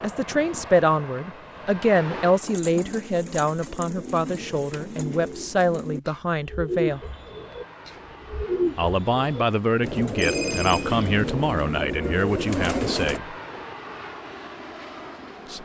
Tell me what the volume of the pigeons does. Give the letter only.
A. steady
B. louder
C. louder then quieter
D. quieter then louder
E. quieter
B.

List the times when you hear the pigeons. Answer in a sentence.
The pigeons can be heard from 2.4 to 13.2 s.